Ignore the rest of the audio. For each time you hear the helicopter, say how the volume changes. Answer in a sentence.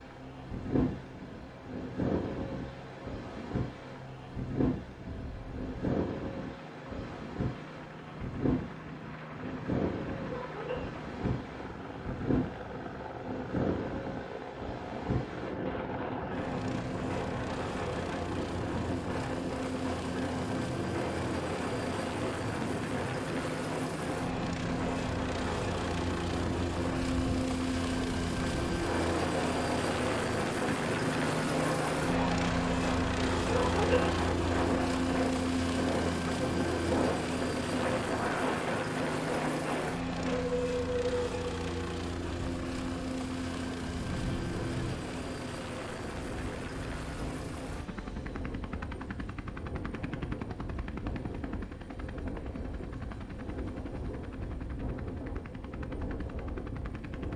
The helicopter can be heard from 0.0 to 57.3 s, getting louder then quieter.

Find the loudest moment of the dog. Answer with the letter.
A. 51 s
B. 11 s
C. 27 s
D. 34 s
D.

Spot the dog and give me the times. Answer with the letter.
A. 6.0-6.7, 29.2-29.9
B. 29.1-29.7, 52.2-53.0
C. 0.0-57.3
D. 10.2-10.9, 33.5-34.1
D.